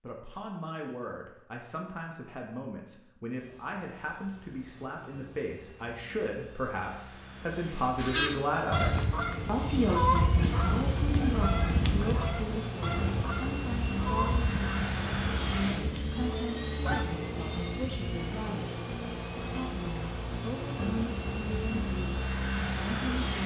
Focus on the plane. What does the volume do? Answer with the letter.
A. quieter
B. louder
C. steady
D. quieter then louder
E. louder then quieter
B.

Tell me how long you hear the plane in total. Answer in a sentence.
You can hear the plane for 20 seconds altogether.